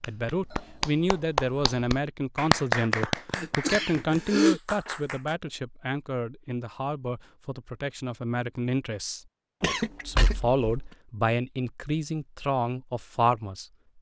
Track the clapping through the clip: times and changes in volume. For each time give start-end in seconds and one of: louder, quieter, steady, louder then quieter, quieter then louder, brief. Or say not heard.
0.0-5.3 louder then quieter.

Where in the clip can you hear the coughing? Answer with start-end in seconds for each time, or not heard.
3.3-4.6, 9.6-10.9.